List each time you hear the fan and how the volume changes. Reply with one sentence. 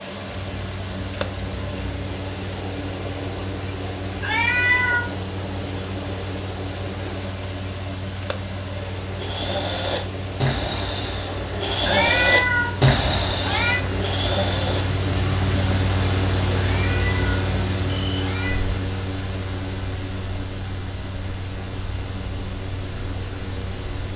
You can hear the fan from 0.0 to 24.1 s, getting louder then quieter.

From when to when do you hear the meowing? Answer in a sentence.
You can hear the meowing from 4.2 to 5.1 s, from 11.8 to 12.8 s, from 13.4 to 13.8 s, from 16.6 to 17.5 s and from 18.1 to 18.6 s.